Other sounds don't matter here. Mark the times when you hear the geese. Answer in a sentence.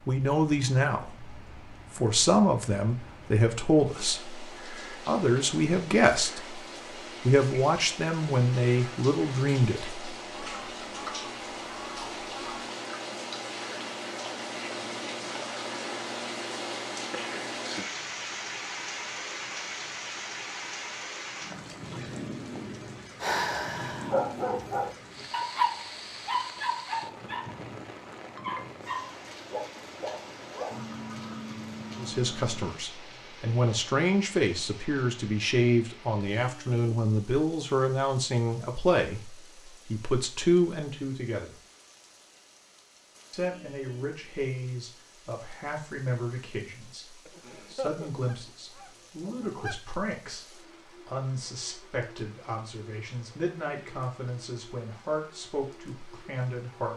The geese can be heard from 10.3 to 12.7 s, from 30.7 to 32.7 s and from 47.2 to 49.8 s.